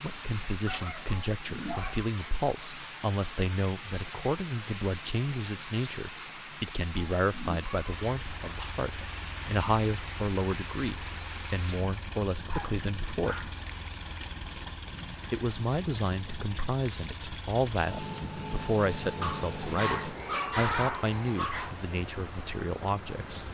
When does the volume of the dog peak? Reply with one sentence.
The volume of the dog peaks at 21 seconds.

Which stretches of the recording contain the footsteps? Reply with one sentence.
You can't hear the footsteps here.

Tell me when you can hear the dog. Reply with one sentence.
The dog can be heard from 0.7 to 2.0 s, from 12.5 to 13.6 s and from 19.2 to 21.8 s.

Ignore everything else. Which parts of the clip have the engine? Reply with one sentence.
You can hear the engine from 7.8 to 20.2 s.